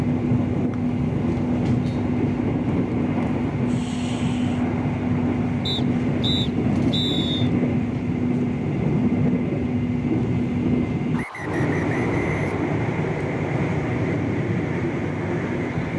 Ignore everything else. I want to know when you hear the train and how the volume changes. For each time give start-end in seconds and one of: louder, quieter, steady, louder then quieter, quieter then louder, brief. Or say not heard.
0.0-15.9 steady.